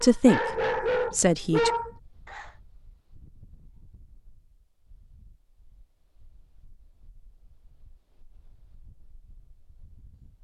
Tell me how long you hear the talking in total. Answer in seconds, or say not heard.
2 s.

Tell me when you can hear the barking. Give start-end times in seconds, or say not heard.
0.0-2.5.